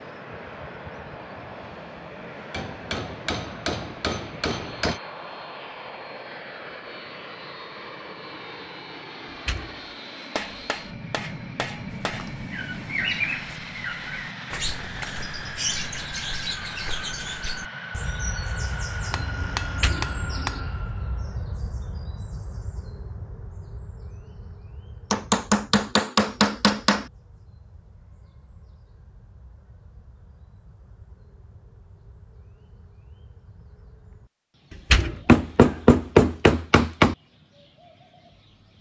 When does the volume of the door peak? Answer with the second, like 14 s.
35 s.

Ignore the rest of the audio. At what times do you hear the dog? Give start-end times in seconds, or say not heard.
not heard.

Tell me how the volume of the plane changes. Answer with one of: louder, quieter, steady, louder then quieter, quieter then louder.
steady.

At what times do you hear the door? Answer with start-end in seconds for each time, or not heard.
9.2-9.8, 19.6-20.7, 34.7-35.8.